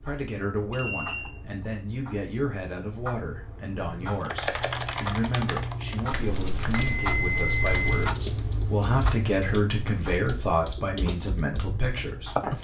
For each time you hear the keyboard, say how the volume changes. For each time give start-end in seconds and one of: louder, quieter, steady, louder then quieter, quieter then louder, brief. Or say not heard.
4.2-12.6 quieter.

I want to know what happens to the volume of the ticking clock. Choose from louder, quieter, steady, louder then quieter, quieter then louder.
louder then quieter.